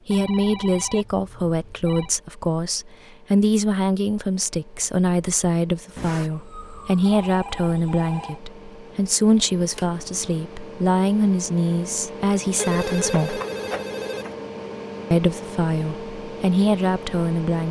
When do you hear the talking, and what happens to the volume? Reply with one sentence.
You can hear the talking from 0.1 to 13.4 s, at a steady volume; and briefly from 15.1 to 17.6 s.